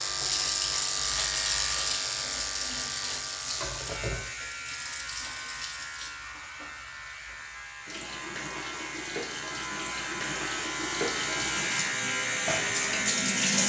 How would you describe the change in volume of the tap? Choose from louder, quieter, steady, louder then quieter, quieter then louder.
quieter then louder.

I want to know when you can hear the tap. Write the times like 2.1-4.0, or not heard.
0.0-13.6.